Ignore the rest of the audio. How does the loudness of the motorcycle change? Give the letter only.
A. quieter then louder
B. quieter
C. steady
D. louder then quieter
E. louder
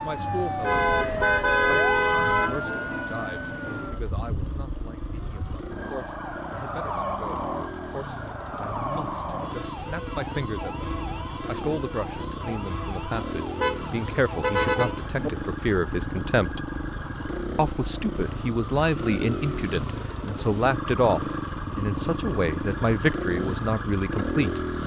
E.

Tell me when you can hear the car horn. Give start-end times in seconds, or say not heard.
0.6-2.6, 13.6-15.3.